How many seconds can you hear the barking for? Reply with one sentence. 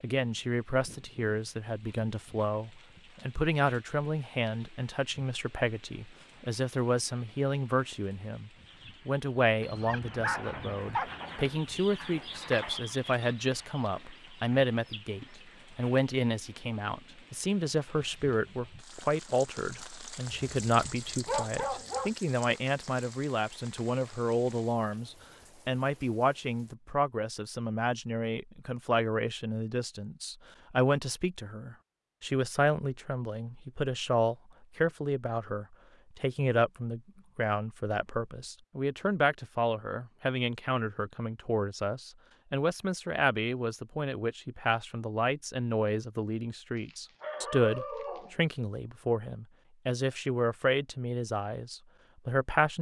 The barking can be heard for 5 seconds in total.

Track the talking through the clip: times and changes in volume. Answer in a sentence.
The talking can be heard from 0.0 to 52.7 s, at a steady volume.